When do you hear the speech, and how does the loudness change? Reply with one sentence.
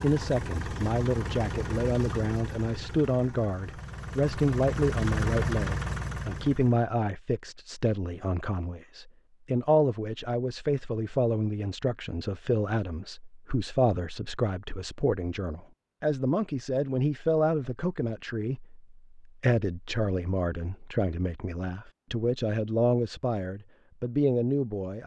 The speech can be heard from 0.0 to 25.0 s, at a steady volume.